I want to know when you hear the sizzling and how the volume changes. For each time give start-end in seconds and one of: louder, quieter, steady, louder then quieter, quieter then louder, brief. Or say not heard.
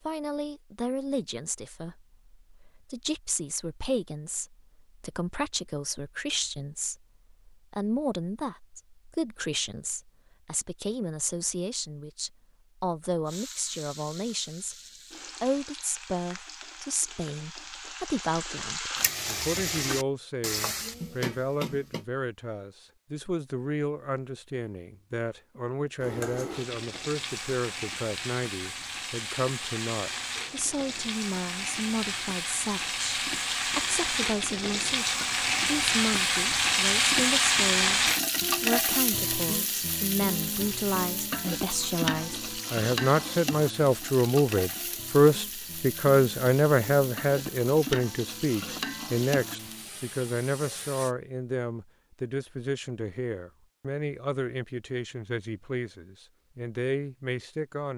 13.2-22.1 louder
25.9-51.1 louder then quieter.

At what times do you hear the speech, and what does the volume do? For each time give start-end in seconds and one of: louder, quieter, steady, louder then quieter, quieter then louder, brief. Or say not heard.
0.0-14.8 steady
15.4-57.9 louder then quieter.